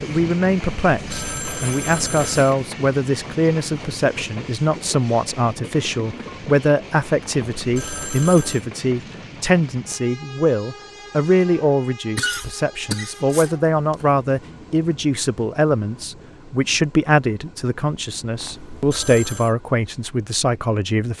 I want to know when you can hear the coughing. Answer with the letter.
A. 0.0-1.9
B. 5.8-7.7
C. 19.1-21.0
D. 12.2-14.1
D.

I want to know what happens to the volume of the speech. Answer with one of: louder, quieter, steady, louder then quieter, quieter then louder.
steady.